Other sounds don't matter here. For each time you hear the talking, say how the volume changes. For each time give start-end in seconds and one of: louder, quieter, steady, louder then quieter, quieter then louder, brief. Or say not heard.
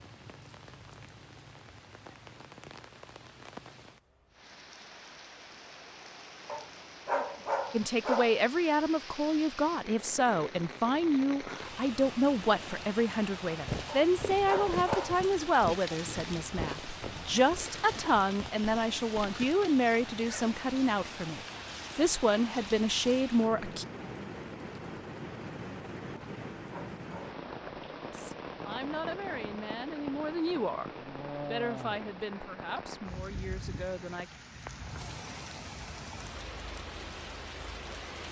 7.7-23.9 steady
28.1-30.9 brief
31.5-34.4 brief.